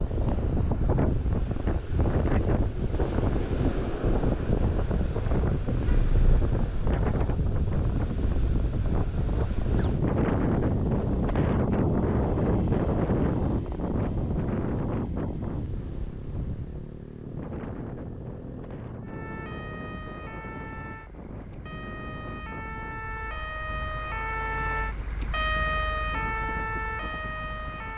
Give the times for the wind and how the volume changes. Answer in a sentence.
The wind can be heard from 0.0 to 27.9 s, getting quieter.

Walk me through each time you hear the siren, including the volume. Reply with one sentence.
The siren can be heard from 19.0 to 27.9 s, getting louder.